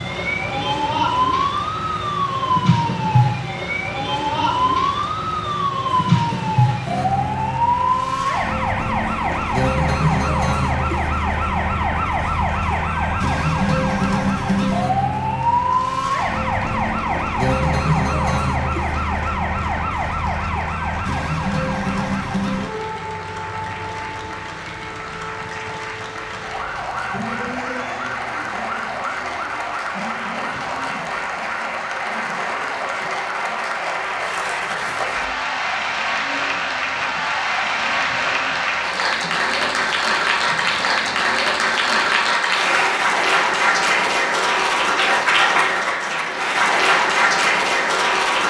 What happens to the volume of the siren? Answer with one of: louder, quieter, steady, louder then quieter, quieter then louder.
quieter.